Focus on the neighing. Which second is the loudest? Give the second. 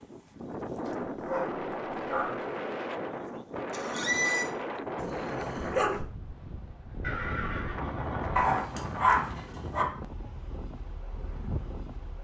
4 s.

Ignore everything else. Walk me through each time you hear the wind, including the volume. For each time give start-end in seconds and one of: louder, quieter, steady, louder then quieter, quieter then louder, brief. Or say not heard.
0.0-12.2 quieter.